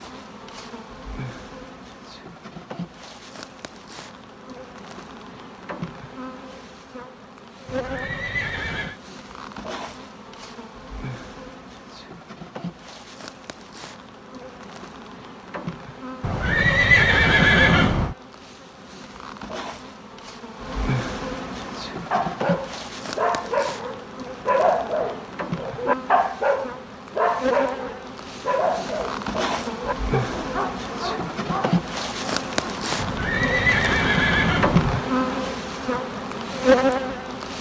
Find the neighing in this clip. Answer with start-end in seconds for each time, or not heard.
7.7-8.9, 16.2-18.1, 33.0-35.0.